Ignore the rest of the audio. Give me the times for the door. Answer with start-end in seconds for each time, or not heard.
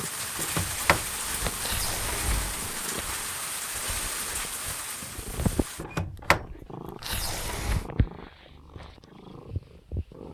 0.3-2.8, 5.8-7.9.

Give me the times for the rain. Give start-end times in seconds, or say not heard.
0.0-5.8.